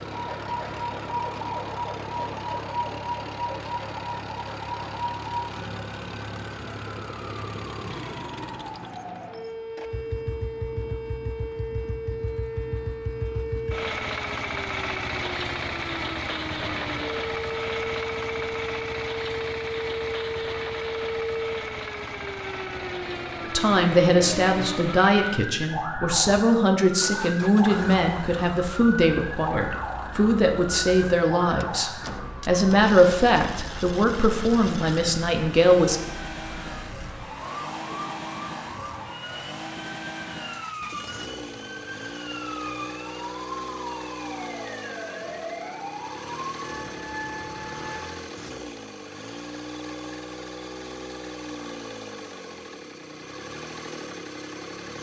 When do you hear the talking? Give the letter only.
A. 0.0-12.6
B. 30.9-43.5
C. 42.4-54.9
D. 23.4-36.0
D.